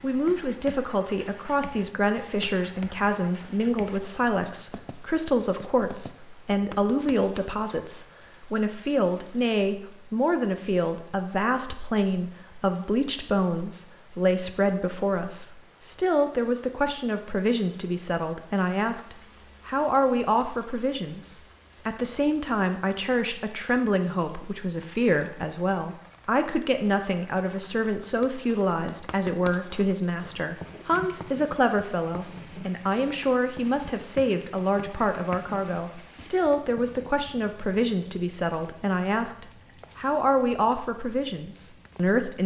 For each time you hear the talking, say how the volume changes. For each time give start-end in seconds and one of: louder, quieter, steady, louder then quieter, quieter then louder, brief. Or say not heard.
0.0-42.4 steady.